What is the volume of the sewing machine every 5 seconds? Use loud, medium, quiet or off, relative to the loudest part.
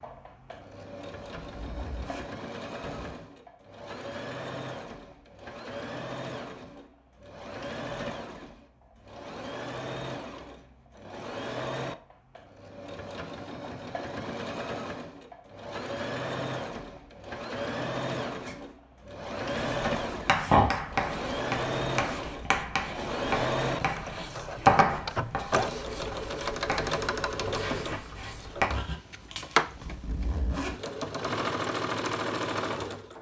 medium, medium, medium, loud, loud, loud, loud.